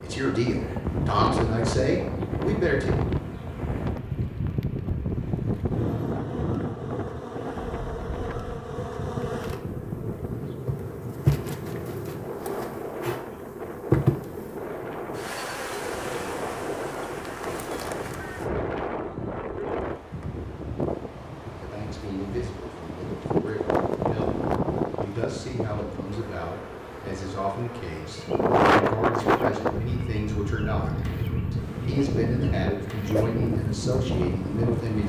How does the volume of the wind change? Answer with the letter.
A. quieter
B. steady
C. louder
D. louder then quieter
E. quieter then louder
E.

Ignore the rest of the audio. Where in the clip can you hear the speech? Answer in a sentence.
You can hear the speech from 0.0 to 3.0 s and from 21.6 to 35.0 s.